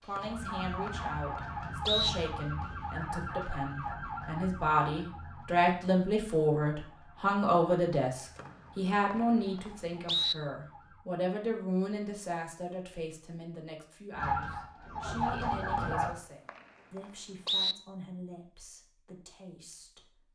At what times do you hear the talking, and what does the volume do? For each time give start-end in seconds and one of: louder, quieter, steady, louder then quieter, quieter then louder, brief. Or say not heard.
0.0-20.2 louder then quieter.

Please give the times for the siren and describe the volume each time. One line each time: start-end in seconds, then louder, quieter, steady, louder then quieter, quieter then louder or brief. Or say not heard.
0.0-11.1 quieter
14.1-16.1 brief.